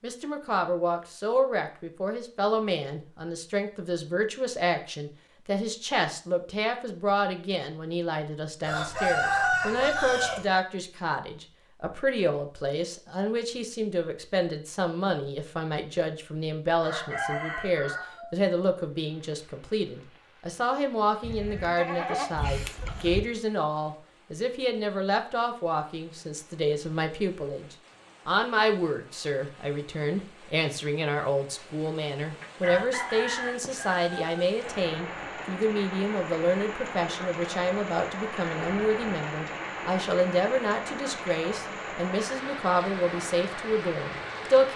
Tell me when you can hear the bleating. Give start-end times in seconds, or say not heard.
21.2-23.2.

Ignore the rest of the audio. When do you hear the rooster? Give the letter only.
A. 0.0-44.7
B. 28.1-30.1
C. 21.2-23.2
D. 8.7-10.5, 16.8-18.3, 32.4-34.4
D.